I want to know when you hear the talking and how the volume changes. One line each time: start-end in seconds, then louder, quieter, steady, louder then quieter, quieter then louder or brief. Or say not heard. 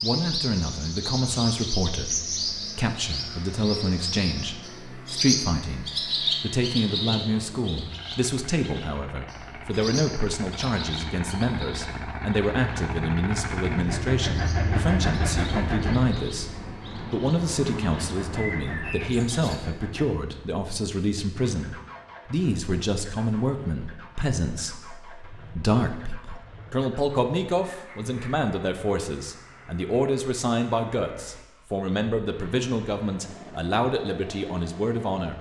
0.0-35.3 steady.